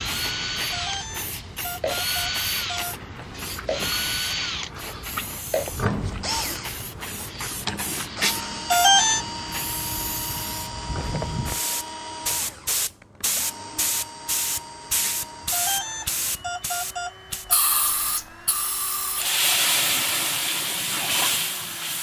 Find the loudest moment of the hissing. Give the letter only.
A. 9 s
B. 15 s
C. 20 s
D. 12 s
C.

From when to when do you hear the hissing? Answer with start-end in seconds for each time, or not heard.
0.0-21.9.